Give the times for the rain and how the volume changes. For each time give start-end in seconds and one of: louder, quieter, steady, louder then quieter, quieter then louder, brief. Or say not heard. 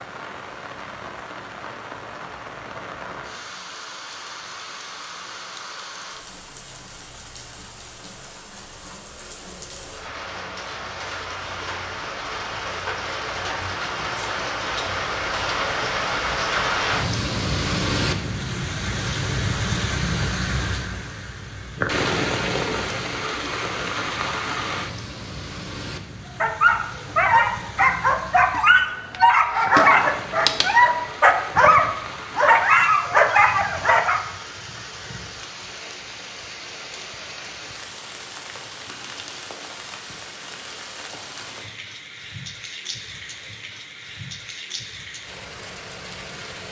0.0-46.6 louder then quieter.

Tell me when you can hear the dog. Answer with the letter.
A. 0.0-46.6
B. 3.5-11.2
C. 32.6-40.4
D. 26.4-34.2
D.